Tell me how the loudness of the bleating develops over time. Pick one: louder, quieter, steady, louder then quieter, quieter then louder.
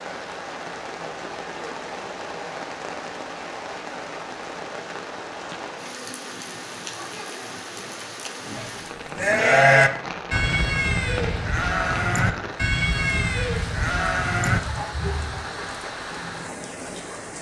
quieter.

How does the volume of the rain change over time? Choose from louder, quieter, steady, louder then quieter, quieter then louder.
steady.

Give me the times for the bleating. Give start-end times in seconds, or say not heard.
8.4-15.6.